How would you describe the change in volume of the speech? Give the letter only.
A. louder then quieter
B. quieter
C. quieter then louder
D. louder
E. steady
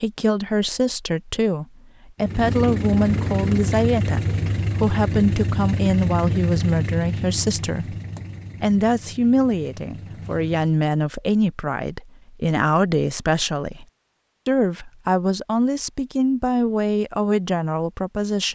E.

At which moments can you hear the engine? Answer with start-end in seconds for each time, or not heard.
2.2-10.8.